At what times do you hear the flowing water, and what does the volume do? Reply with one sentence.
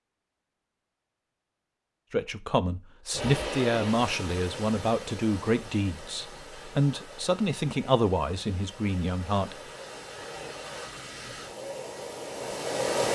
The flowing water can be heard from 3.1 to 13.1 s, getting quieter then louder.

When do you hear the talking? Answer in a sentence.
The talking can be heard from 2.1 to 9.6 s.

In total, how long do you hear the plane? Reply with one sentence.
The plane can't be heard in this clip.